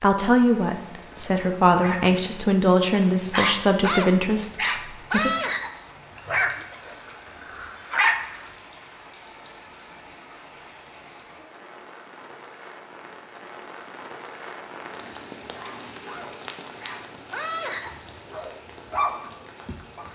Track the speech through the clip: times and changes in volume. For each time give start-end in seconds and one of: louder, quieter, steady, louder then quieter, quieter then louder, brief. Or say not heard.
0.0-5.3 steady.